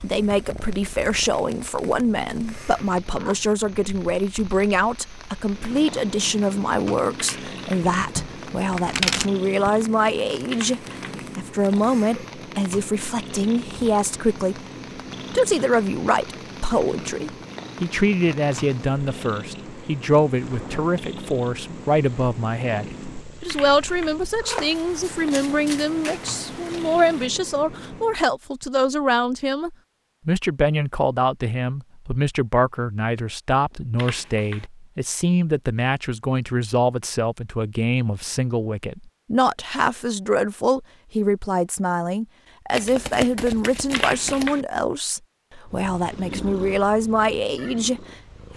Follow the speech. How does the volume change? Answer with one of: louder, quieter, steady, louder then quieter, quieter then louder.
steady.